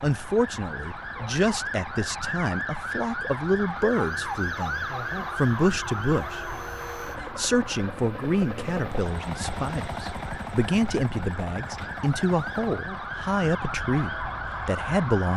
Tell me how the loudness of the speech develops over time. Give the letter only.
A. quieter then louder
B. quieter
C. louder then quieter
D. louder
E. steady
E.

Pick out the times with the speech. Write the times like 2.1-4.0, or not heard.
0.0-6.5, 7.3-15.3.